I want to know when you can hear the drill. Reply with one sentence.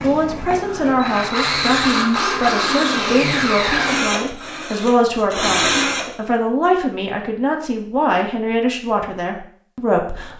The drill can be heard from 0.0 to 6.2 s.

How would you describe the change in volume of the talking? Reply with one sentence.
The loudness of the talking stays about the same.